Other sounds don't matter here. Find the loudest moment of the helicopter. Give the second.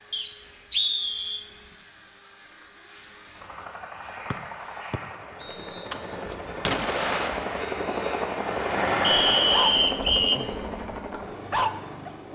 9 s.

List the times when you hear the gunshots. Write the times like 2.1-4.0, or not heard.
5.9-7.8.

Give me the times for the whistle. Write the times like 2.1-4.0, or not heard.
0.1-1.4, 4.3-5.9, 9.0-10.4.